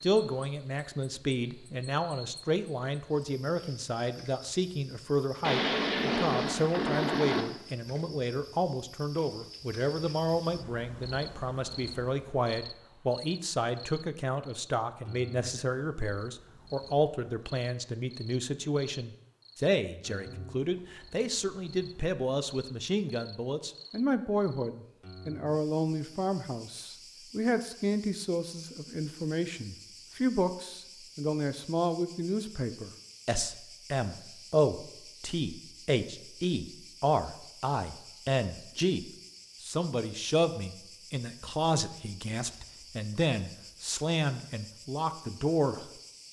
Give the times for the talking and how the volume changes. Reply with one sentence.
You can hear the talking from 0.0 to 45.9 s, at a steady volume.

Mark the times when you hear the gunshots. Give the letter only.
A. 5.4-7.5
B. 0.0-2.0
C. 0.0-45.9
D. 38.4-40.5
A.